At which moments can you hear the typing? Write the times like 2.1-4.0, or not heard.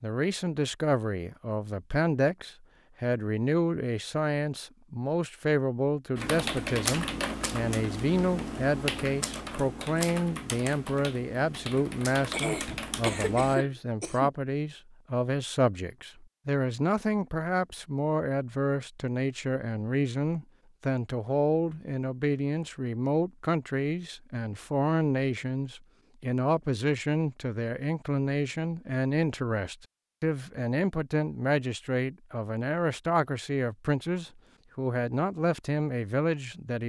6.2-13.6.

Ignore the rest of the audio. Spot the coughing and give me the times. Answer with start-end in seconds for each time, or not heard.
12.3-14.3.